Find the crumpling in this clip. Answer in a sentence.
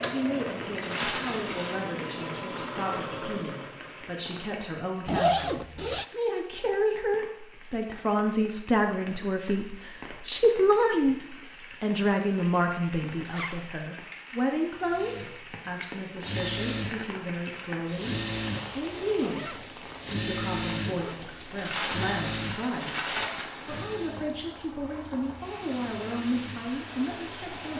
You can hear the crumpling from 0.8 to 1.8 s and from 21.6 to 23.5 s.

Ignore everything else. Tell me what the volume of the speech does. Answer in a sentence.
The loudness of the speech goes up, then down.